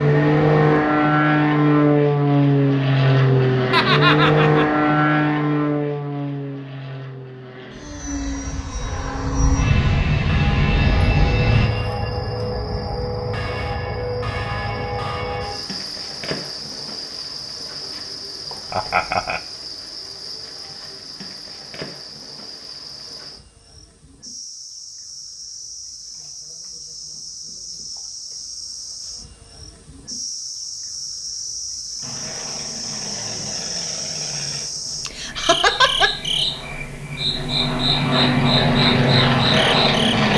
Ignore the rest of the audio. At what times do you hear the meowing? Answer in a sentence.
You can't hear the meowing here.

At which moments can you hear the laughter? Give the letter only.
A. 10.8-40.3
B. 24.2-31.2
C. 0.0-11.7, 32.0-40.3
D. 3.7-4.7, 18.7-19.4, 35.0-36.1
D.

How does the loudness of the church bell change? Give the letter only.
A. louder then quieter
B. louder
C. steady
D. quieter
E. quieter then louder
B.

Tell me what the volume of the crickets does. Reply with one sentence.
The volume of the crickets goes down, then up.